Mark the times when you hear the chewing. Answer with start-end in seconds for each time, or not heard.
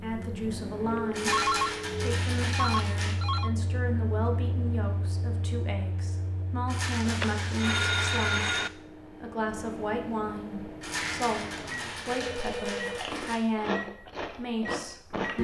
12.8-15.3.